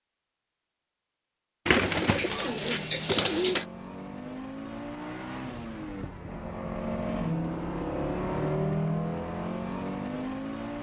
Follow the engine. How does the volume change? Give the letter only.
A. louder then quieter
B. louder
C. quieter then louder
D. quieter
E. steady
B.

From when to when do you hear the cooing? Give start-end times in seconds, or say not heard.
1.6-3.6.